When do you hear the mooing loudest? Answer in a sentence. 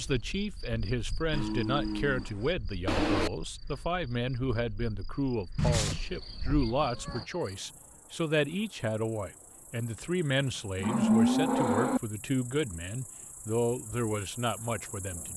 The loudest moment of the mooing is at 11 seconds.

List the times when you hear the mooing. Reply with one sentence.
The mooing can be heard from 1.3 to 2.2 s, from 2.9 to 3.3 s, from 5.5 to 7.2 s and from 10.8 to 12.0 s.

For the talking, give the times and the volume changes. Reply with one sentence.
You can hear the talking from 0.0 to 15.3 s, at a steady volume.